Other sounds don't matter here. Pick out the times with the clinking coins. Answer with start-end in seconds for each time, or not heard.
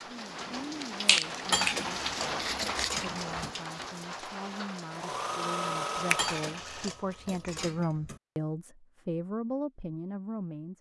1.5-3.5, 6.2-8.2.